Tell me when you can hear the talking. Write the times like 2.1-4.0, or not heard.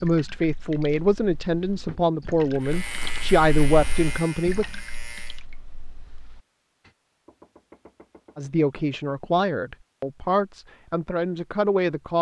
0.0-4.7, 8.3-12.1.